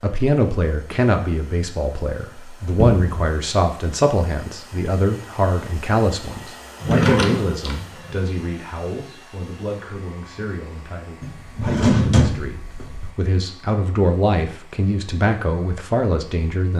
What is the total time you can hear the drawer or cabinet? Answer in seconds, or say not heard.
4 s.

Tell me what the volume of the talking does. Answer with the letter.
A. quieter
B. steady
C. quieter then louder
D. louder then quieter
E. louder
C.